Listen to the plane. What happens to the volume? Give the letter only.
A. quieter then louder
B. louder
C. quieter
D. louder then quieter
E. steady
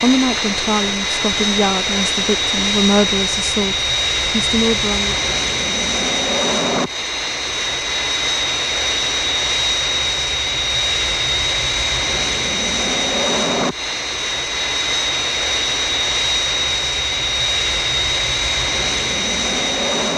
E.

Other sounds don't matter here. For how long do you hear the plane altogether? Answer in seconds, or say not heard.
20 s.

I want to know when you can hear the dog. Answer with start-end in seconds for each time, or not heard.
not heard.